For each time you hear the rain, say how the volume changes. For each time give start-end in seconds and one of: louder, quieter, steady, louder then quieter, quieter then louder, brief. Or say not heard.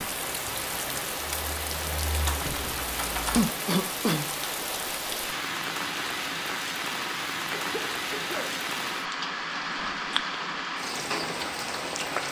0.0-12.2 steady.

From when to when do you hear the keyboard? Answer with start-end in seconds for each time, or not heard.
0.1-3.4.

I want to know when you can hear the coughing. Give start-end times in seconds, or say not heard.
3.3-4.3, 7.5-8.6.